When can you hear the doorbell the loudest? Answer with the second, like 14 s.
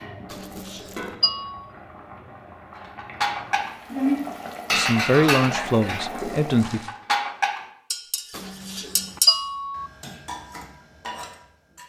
9 s.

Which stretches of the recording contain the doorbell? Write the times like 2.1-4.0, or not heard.
0.3-1.6, 8.3-9.8.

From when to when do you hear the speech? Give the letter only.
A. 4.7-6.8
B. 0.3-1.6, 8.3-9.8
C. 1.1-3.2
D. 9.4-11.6
A.